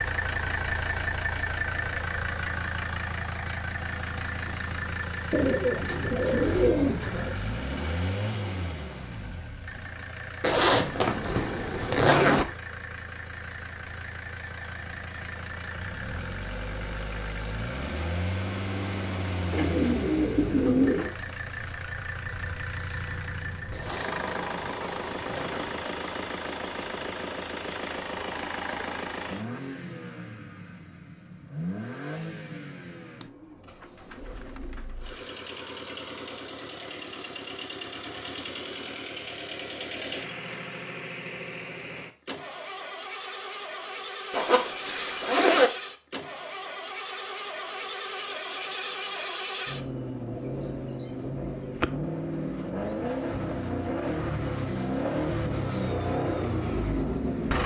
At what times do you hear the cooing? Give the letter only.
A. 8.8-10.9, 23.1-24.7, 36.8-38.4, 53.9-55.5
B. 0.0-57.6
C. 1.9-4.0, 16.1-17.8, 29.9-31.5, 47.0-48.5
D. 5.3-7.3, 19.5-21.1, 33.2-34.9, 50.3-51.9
D.